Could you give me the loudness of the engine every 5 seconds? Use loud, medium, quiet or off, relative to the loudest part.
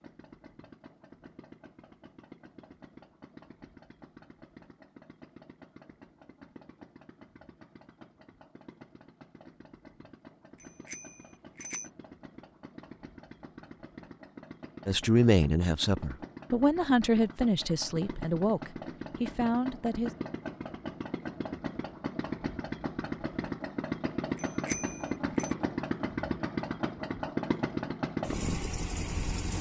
quiet, quiet, quiet, medium, loud, loud.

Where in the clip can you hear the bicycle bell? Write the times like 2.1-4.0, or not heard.
10.6-11.9, 24.4-25.5.